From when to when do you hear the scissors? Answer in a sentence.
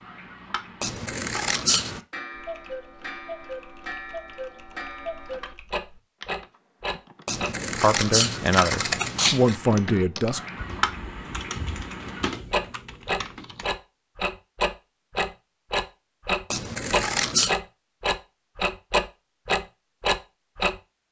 The scissors can be heard from 0.8 to 2.0 s, from 7.2 to 9.6 s and from 16.5 to 17.6 s.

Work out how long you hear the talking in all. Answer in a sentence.
You can hear the talking for 3 seconds altogether.